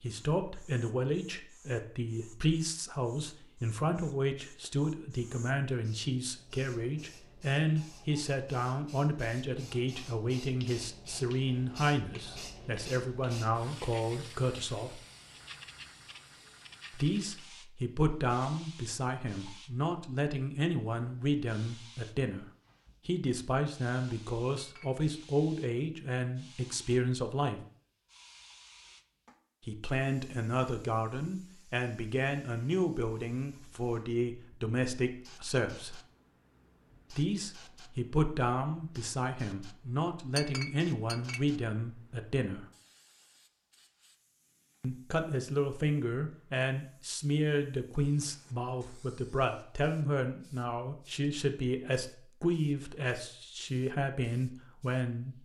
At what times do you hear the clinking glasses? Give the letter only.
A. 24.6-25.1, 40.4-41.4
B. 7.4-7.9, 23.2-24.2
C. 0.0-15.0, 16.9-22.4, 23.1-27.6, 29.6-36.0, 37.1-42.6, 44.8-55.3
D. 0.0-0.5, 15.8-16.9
A.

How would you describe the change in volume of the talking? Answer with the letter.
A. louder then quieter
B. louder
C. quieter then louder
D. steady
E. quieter
D.